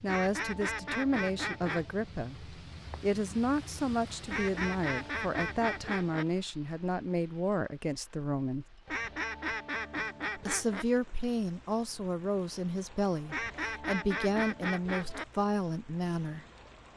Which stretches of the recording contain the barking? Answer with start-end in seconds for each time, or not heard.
not heard.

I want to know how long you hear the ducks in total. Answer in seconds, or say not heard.
8 s.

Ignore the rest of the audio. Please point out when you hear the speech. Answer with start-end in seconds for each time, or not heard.
0.0-8.7, 10.3-16.4.